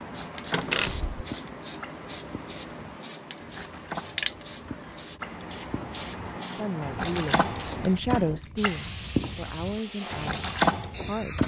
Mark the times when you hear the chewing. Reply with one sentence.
You can't hear the chewing here.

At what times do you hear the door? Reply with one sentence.
You can hear the door from 0.5 to 1.1 s.